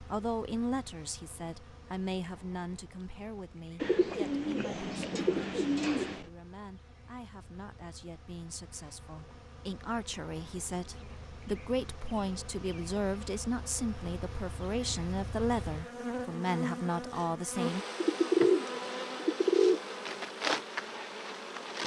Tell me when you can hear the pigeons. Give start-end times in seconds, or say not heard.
3.8-6.2, 18.0-19.9.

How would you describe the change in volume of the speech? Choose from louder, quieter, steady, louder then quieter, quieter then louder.
quieter then louder.